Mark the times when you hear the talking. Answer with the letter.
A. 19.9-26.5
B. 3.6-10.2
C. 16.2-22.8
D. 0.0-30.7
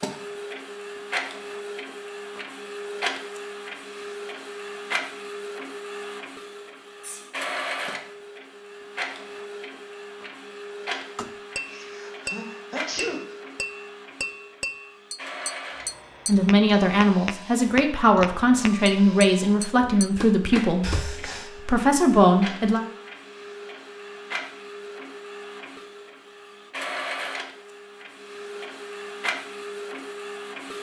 C.